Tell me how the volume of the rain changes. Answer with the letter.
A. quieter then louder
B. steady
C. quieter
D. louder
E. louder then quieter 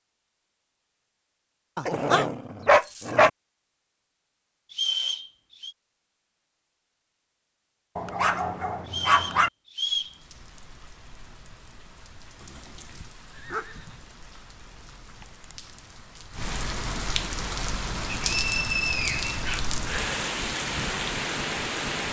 D.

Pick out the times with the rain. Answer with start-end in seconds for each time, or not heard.
9.8-22.0.